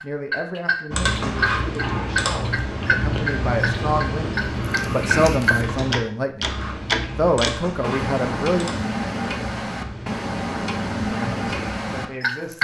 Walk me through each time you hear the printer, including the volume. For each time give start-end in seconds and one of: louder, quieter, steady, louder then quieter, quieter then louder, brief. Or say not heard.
not heard.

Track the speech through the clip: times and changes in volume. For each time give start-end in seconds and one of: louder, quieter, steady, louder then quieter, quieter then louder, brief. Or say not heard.
0.0-8.8 louder
11.0-12.5 brief.